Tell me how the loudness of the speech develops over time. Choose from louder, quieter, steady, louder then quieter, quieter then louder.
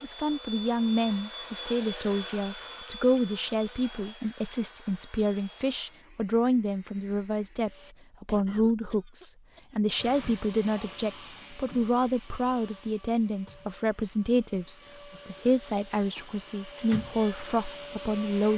steady.